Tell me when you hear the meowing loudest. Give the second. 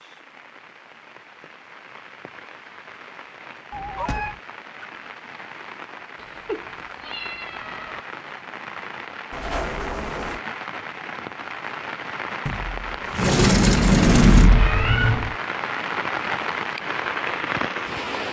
15 s.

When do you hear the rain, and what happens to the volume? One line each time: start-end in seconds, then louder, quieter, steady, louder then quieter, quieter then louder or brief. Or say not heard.
0.0-18.2 louder.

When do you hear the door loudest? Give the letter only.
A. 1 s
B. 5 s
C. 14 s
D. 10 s
C.